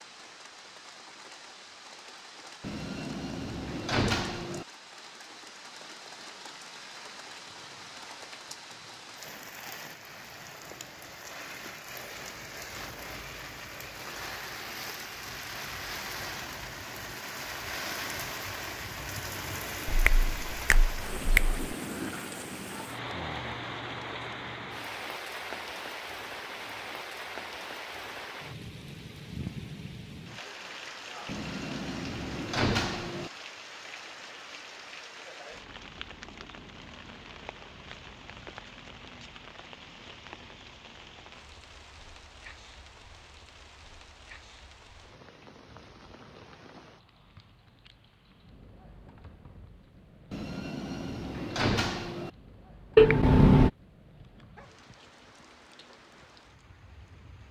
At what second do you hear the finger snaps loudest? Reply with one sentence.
The volume of the finger snaps peaks at 53 seconds.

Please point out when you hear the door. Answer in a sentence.
The door can be heard from 2.6 to 4.7 s, from 31.2 to 33.3 s and from 50.3 to 52.3 s.